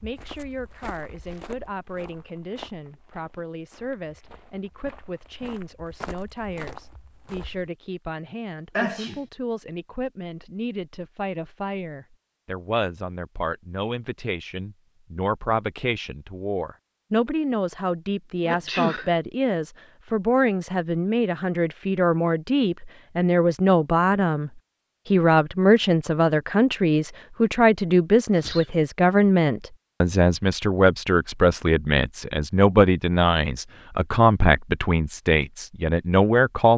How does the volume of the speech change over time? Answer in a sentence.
The volume of the speech goes up.